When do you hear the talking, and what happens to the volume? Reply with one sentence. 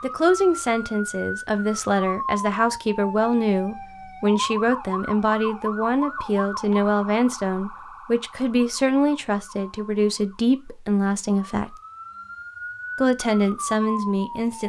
You can hear the talking from 0.0 to 11.8 s, at a steady volume; and briefly from 12.9 to 14.6 s.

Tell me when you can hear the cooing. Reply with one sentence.
The cooing can't be heard in this clip.